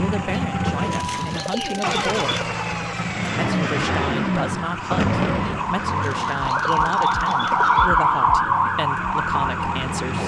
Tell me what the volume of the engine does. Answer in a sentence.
The loudness of the engine goes down.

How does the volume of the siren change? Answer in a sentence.
The loudness of the siren goes up.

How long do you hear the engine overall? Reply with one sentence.
The engine can be heard for 10 seconds in total.